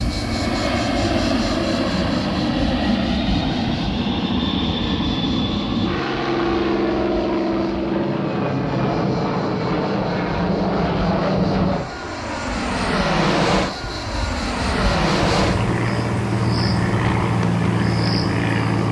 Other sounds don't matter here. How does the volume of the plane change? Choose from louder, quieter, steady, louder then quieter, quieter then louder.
steady.